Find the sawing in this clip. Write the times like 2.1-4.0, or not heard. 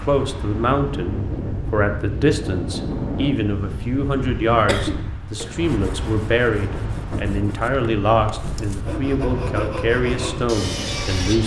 5.6-11.4.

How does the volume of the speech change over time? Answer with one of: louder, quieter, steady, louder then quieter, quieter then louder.
steady.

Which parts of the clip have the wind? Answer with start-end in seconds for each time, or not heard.
0.0-11.4.